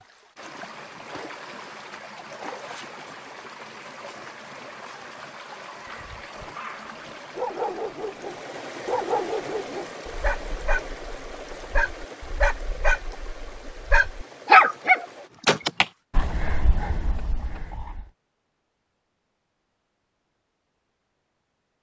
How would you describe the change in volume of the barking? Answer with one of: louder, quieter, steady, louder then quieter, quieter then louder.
louder then quieter.